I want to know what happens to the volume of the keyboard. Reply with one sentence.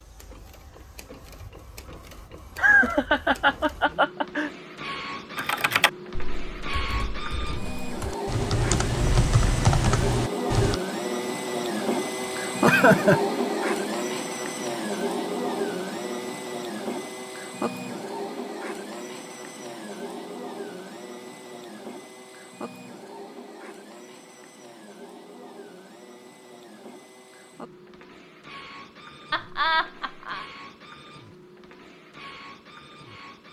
The loudness of the keyboard goes down, then up.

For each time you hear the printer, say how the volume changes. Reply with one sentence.
You can hear the printer from 0.0 to 33.4 s, getting louder then quieter.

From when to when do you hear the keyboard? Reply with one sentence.
The keyboard can be heard from 5.3 to 10.8 s.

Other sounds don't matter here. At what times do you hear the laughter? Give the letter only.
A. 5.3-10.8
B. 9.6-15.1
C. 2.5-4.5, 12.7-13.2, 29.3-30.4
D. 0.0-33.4
C.